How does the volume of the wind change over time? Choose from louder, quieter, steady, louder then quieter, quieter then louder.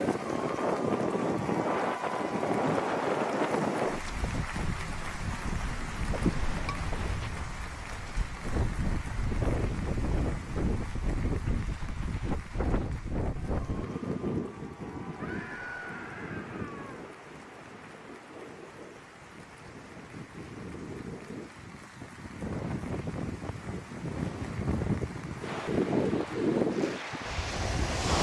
quieter then louder.